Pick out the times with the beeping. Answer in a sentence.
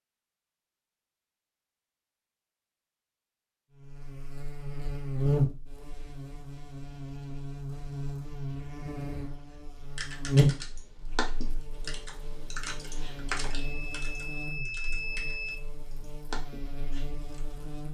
You can hear the beeping from 13.5 to 16.1 s.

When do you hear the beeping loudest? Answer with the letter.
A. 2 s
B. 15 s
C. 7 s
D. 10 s
B.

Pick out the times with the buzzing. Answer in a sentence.
You can hear the buzzing from 3.8 to 17.8 s.